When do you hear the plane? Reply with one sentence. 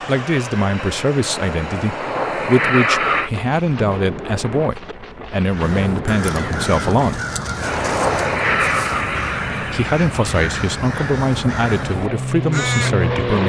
The plane can be heard from 0.0 to 3.3 s and from 7.6 to 13.4 s.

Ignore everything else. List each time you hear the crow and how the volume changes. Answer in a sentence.
You can hear the crow from 5.5 to 12.9 s, at a steady volume.